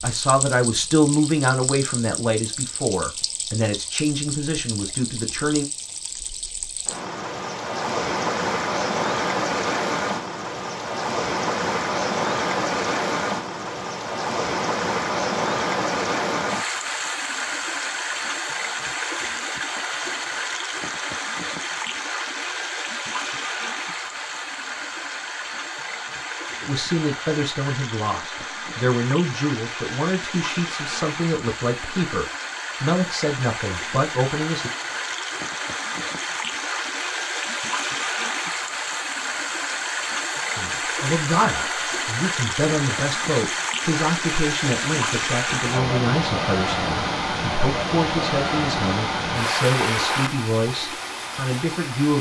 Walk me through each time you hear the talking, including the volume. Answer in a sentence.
The talking can be heard from 0.0 to 5.7 s, getting quieter; from 26.6 to 34.7 s, at a steady volume; and from 40.5 to 52.1 s, at a steady volume.